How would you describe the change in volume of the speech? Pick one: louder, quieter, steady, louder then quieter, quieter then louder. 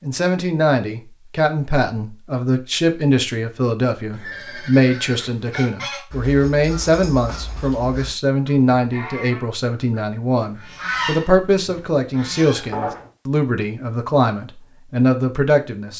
steady.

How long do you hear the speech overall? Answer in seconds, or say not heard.
16 s.